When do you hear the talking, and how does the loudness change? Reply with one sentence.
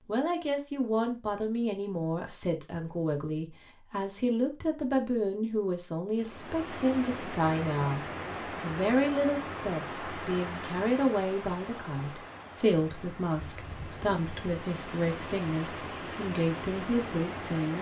You can hear the talking from 0.1 to 17.7 s, at a steady volume.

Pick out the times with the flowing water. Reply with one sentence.
The flowing water can be heard from 6.2 to 17.7 s.